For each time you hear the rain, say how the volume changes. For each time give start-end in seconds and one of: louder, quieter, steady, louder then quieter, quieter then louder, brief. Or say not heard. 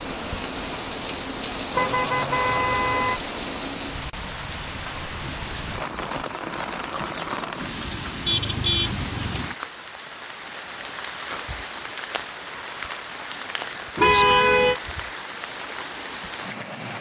0.0-16.9 steady.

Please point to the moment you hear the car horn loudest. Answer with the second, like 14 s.
14 s.